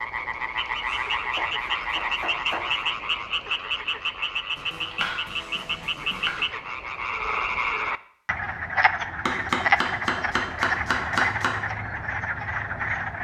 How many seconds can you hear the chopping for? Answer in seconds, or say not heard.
6 s.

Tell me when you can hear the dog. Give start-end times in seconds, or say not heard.
not heard.